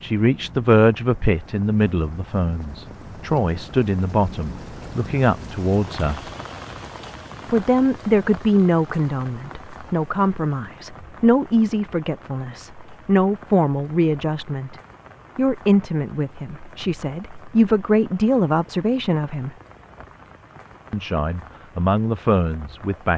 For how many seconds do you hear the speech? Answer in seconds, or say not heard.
20 s.